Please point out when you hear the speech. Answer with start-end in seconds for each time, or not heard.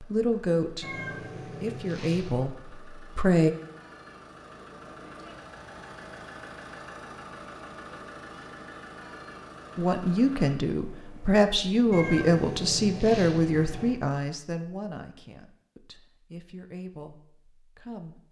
0.0-3.5, 9.8-18.2.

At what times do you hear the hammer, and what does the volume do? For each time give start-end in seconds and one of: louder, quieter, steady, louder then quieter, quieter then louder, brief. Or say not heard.
not heard.